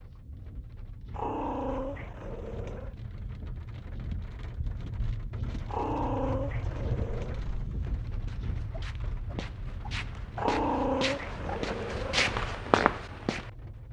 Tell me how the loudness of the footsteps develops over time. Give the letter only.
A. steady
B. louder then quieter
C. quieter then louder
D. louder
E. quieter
D.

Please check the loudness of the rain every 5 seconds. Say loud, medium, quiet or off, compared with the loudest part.
medium, loud, medium.